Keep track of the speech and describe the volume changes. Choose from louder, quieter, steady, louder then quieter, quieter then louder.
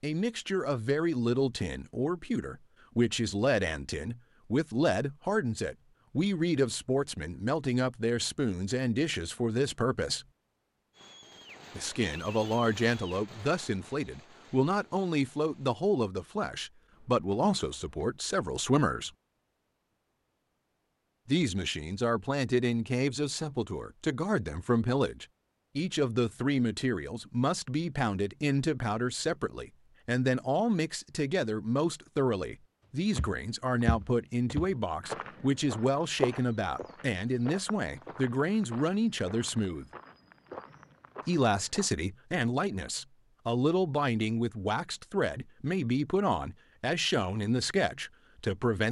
steady.